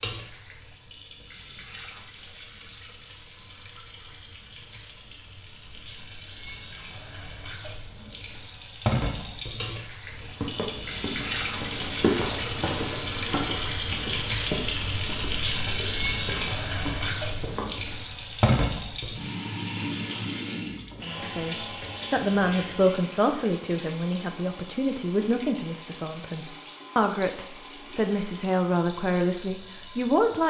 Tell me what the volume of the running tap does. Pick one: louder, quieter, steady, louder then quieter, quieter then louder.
louder then quieter.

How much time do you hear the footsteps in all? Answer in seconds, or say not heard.
8 s.